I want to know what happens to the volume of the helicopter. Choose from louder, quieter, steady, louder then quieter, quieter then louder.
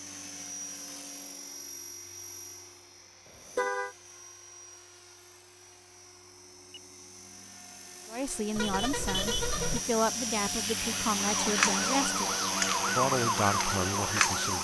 quieter then louder.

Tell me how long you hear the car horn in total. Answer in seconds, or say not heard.
2 s.